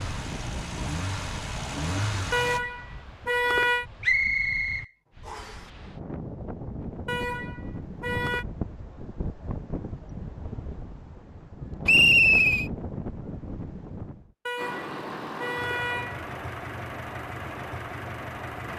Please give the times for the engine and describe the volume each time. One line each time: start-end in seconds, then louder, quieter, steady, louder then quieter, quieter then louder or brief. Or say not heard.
0.0-2.6 brief
14.6-18.7 steady.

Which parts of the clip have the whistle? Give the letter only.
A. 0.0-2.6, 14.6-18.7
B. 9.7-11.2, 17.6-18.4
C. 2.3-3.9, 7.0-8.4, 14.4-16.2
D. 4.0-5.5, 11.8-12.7
D.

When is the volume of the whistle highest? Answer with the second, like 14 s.
12 s.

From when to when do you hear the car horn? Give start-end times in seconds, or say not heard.
2.3-3.9, 7.0-8.4, 14.4-16.2.